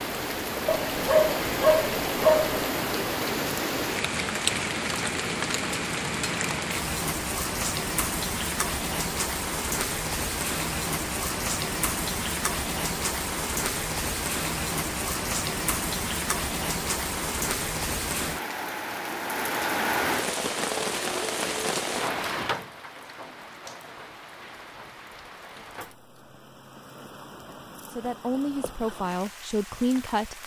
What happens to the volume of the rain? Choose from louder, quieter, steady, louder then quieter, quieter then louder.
quieter.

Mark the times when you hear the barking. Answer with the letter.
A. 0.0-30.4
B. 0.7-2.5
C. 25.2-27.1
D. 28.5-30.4
B.